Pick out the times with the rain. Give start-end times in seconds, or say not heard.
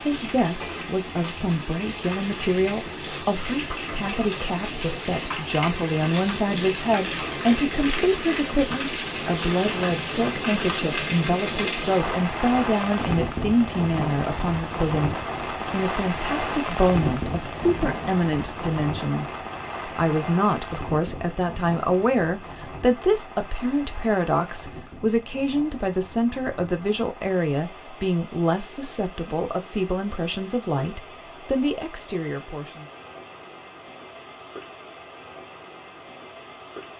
0.0-36.9.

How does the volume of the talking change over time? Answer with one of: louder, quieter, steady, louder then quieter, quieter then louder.
steady.